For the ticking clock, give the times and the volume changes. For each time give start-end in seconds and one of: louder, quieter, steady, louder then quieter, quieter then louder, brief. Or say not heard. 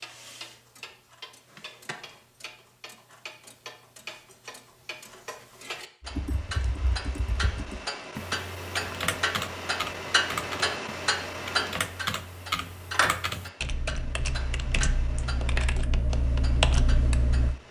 0.0-17.6 louder then quieter.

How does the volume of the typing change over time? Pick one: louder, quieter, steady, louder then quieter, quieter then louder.
louder.